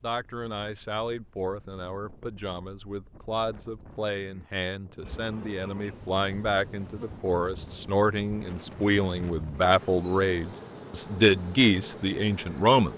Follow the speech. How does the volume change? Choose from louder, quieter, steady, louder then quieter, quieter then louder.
louder.